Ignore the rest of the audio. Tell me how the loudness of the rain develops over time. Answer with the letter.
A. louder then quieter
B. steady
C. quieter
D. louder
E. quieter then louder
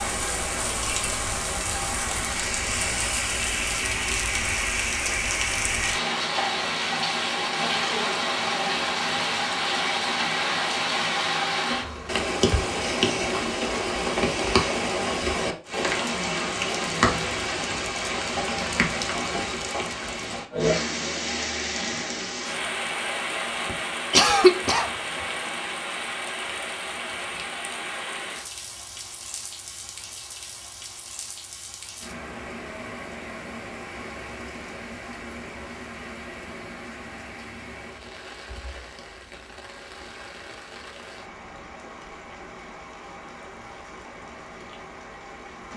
C.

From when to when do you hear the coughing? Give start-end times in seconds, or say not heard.
24.1-24.9.